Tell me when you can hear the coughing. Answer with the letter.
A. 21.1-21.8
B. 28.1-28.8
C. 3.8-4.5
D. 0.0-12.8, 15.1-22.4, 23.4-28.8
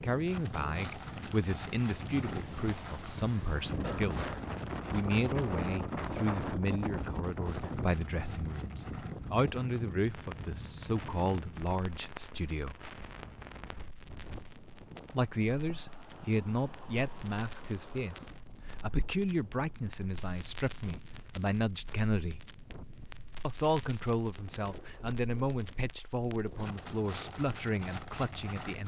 C.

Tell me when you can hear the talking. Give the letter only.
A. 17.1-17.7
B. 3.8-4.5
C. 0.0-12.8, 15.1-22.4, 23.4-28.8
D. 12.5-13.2
C.